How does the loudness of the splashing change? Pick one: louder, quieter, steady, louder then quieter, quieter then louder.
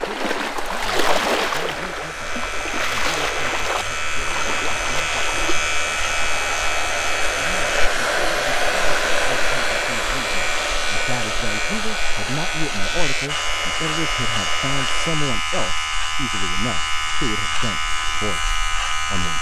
quieter.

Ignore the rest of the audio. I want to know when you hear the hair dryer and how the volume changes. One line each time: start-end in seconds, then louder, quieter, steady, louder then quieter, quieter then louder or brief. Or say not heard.
0.0-15.2 louder then quieter.